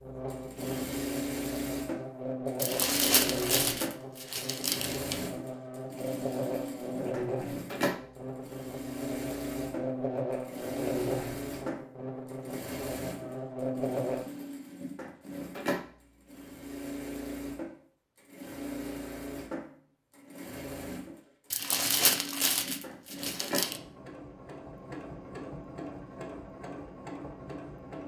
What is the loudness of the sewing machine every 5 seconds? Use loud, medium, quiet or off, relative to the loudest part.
loud, loud, loud, loud, medium, medium.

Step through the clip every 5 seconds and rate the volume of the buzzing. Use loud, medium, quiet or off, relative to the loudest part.
loud, loud, loud, off, off, off.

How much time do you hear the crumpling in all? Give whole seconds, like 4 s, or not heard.
5 s.